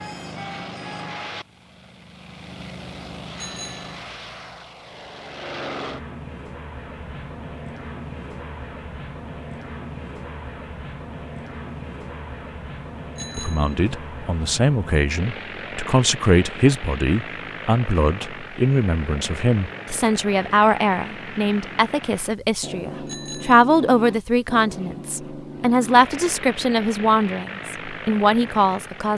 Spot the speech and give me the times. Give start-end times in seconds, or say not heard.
13.3-29.1.